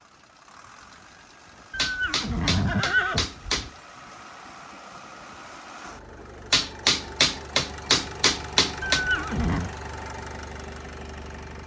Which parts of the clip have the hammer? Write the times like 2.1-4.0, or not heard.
1.8-3.7, 6.5-9.1.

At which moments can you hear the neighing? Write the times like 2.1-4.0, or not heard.
1.7-3.5, 8.9-9.7.